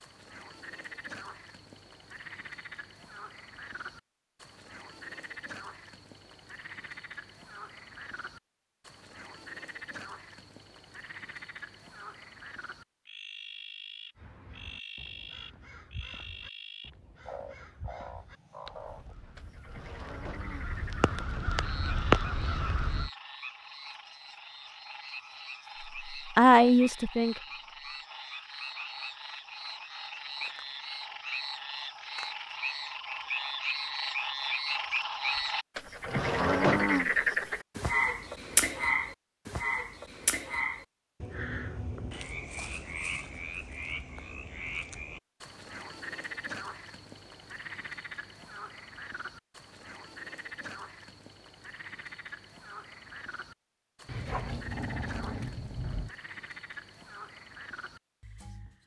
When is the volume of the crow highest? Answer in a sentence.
The loudest moment of the crow is at 22 seconds.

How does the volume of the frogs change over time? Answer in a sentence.
The volume of the frogs goes up, then down.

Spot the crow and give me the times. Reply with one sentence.
You can hear the crow from 14.2 to 23.1 s.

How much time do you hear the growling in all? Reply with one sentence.
You can hear the growling for 2 seconds altogether.